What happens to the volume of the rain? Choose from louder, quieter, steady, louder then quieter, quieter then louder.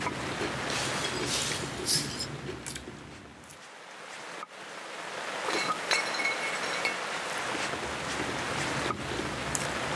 quieter then louder.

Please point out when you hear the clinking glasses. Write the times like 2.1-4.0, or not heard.
0.7-2.3, 5.5-7.0.